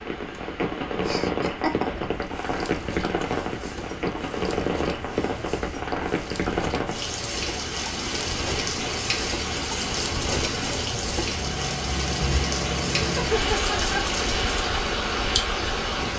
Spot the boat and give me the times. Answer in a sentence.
You can hear the boat from 1.9 to 16.1 s.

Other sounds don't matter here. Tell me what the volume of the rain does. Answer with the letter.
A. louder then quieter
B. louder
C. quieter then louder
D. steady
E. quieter
D.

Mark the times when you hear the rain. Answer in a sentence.
You can hear the rain from 0.0 to 16.1 s.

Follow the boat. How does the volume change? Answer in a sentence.
The loudness of the boat goes up.